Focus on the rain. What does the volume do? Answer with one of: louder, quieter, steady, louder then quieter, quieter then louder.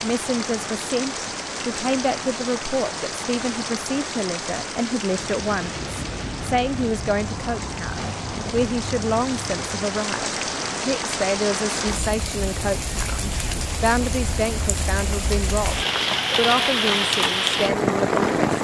louder.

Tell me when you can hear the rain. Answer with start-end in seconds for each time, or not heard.
0.0-18.5.